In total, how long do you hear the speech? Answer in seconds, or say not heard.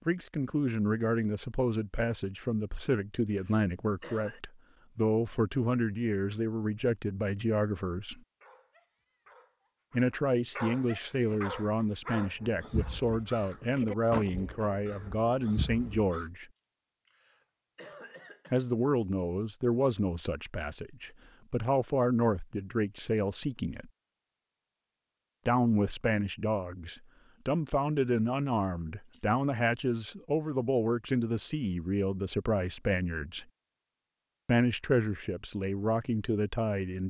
31 s.